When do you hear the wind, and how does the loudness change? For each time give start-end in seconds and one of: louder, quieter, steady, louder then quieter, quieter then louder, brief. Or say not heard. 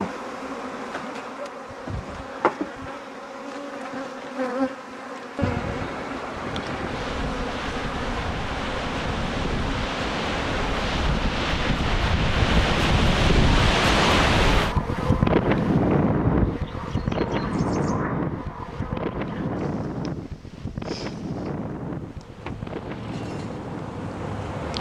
5.4-24.7 louder then quieter.